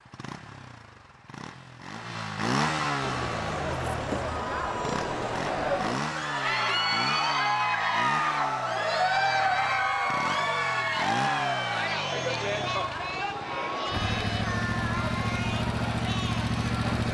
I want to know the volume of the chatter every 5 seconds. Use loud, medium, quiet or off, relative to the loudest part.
medium, loud, loud, medium.